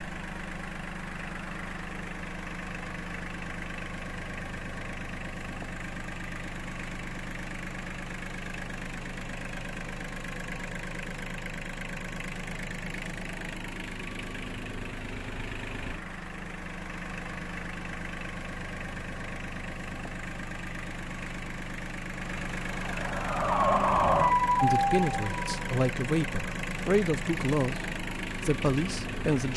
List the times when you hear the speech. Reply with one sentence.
You can hear the speech from 24.6 to 29.5 s.